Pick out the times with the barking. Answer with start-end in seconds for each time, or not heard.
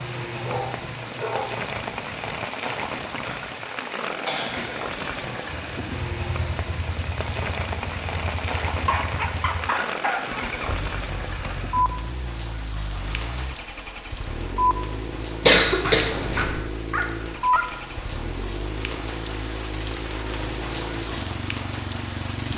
0.3-1.6, 8.7-10.4, 15.8-17.6.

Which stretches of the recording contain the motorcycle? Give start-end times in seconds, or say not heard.
5.5-22.5.